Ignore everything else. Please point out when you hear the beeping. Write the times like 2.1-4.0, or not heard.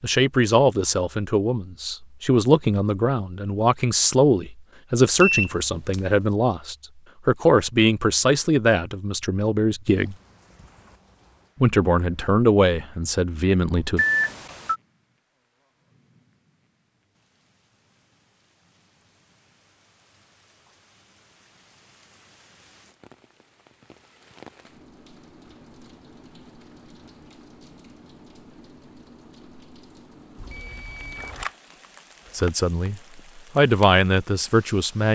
5.2-6.0, 13.9-14.8, 30.4-31.5.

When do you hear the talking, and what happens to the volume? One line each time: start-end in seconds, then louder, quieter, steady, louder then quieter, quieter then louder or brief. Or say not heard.
0.0-10.2 steady
11.6-14.1 brief
32.4-35.1 brief.